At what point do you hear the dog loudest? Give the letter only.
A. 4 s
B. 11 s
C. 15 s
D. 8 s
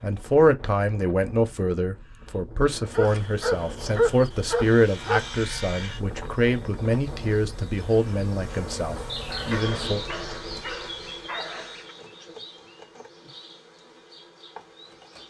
A.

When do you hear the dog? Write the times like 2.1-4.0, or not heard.
2.9-5.3, 9.3-11.9.